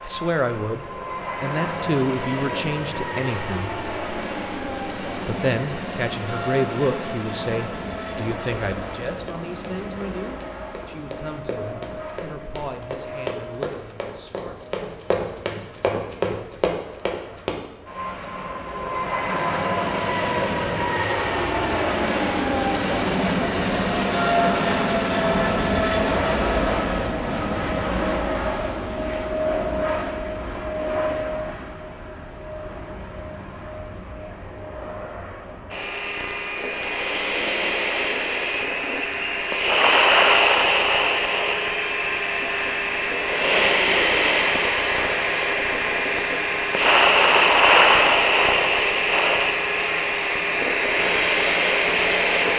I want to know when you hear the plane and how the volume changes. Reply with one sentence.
The plane can be heard from 0.0 to 52.5 s, getting louder.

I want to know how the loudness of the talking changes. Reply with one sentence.
The loudness of the talking goes down.